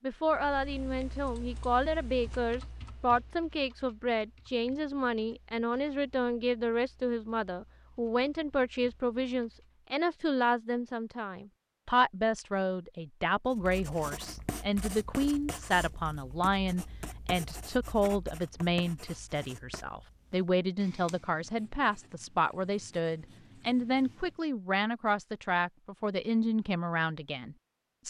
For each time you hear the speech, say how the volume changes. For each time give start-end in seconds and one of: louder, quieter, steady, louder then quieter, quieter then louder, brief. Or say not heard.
0.0-28.0 steady.